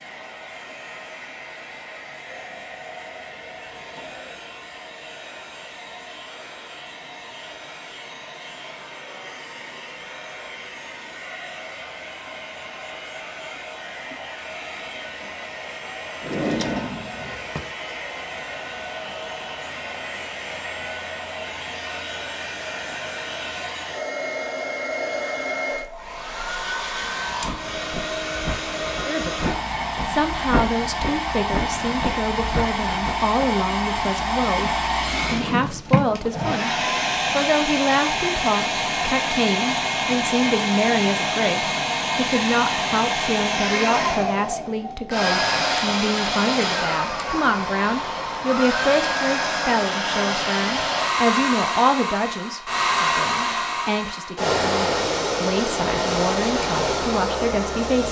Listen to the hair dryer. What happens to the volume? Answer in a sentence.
The volume of the hair dryer goes up.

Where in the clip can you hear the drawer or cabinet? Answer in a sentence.
You can hear the drawer or cabinet from 16.2 to 17.6 s and from 35.2 to 36.6 s.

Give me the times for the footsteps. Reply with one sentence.
The footsteps can be heard from 27.1 to 33.5 s.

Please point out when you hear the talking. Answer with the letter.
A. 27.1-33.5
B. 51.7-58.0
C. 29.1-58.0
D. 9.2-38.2
C.